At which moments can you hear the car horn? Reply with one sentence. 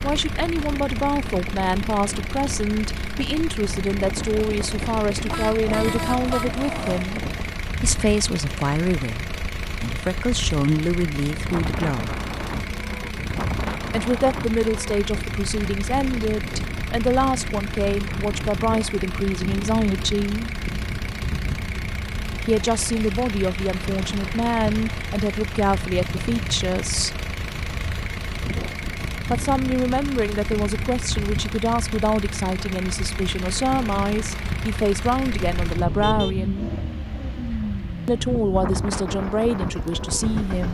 The car horn can be heard from 5.3 to 7.0 s and from 35.2 to 36.4 s.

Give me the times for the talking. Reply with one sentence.
You can hear the talking from 0.0 to 12.2 s, from 13.9 to 20.5 s, from 22.4 to 27.2 s, from 29.3 to 36.7 s and from 38.0 to 40.6 s.